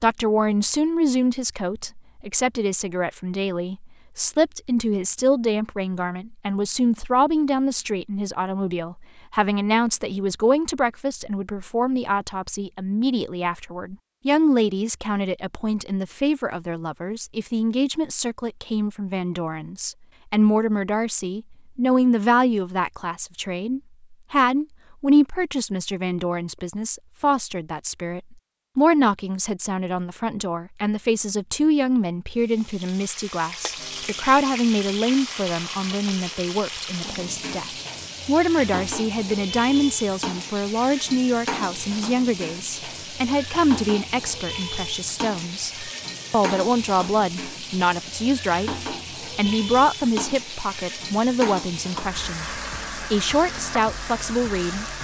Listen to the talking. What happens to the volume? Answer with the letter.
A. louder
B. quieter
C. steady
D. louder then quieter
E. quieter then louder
C.